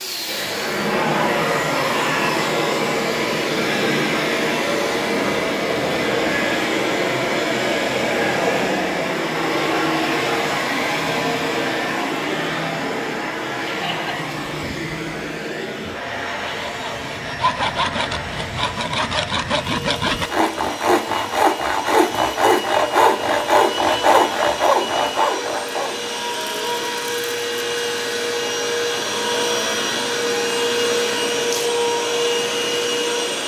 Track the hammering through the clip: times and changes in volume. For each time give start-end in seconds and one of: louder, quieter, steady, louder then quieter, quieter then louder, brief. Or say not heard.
not heard.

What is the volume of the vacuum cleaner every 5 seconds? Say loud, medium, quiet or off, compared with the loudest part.
loud, loud, loud, medium, medium, loud, loud.